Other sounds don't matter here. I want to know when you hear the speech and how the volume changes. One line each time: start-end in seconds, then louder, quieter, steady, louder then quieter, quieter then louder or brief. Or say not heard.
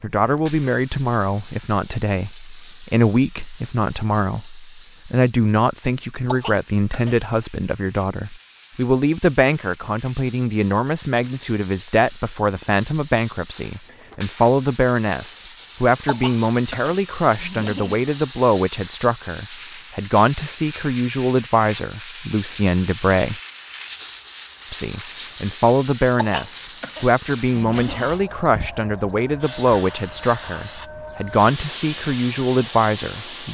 0.0-23.4 steady
24.7-33.5 steady.